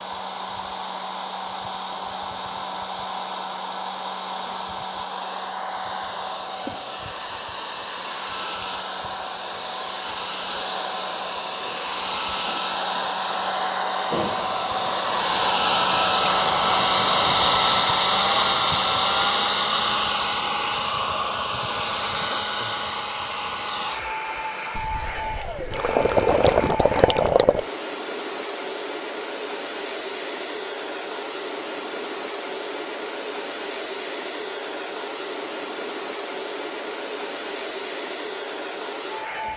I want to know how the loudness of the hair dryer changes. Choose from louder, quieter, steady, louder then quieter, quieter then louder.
louder then quieter.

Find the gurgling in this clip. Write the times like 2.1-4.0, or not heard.
24.8-27.6.